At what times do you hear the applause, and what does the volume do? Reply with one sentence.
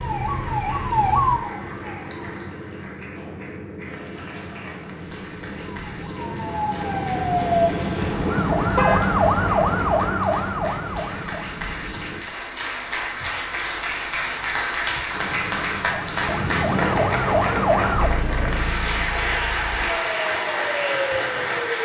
The applause can be heard from 0.0 to 21.8 s, getting louder.